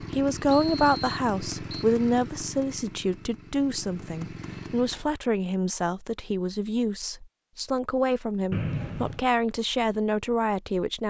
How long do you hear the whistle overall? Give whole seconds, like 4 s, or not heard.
2 s.